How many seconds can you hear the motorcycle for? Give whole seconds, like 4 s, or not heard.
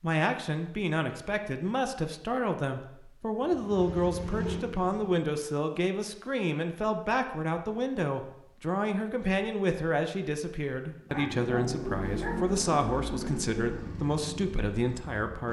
6 s.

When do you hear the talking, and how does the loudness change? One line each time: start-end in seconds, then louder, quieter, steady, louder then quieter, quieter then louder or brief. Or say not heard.
0.0-15.4 steady.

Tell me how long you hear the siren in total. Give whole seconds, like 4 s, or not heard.
not heard.